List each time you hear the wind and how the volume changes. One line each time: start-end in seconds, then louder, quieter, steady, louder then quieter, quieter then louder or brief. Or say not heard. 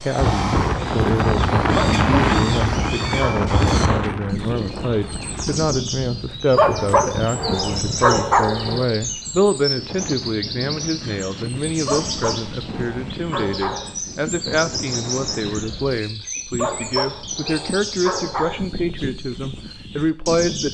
0.1-16.0 quieter.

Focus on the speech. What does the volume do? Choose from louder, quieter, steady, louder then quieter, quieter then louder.
steady.